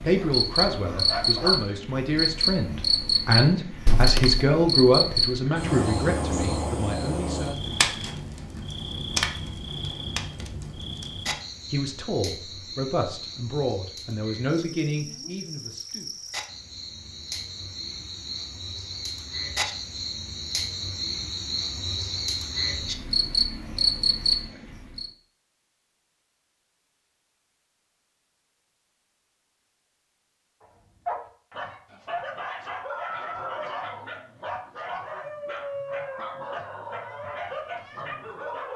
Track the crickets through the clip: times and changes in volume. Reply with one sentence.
You can hear the crickets from 0.0 to 25.1 s, getting quieter then louder.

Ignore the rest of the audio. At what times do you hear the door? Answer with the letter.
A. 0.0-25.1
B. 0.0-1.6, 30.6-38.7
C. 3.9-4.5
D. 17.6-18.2
C.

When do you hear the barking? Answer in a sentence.
You can hear the barking from 0.0 to 1.6 s and from 30.6 to 38.7 s.